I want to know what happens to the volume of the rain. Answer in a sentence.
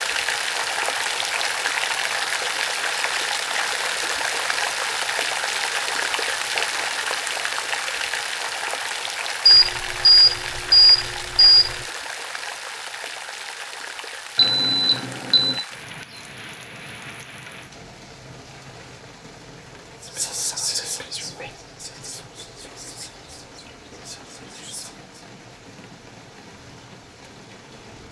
The loudness of the rain goes down.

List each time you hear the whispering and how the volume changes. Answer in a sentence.
The whispering can be heard from 20.0 to 25.1 s, getting quieter.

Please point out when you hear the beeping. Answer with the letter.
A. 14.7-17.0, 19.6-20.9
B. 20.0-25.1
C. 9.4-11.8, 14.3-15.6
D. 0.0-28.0
C.